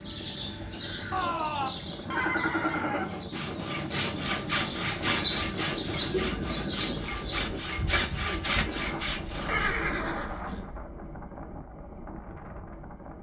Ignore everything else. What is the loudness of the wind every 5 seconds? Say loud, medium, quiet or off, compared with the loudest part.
loud, loud, medium.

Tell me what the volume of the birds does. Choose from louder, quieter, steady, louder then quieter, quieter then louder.
quieter then louder.